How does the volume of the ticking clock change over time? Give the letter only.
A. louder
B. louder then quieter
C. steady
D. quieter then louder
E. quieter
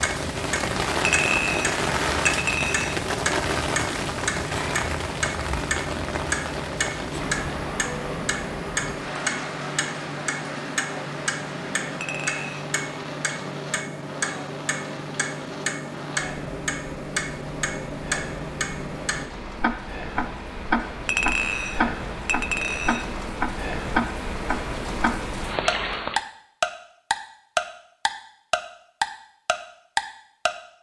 A.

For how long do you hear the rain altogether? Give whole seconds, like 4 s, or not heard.
26 s.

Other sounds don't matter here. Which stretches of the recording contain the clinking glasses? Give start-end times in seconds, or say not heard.
1.1-3.0, 12.0-12.7, 21.1-23.1.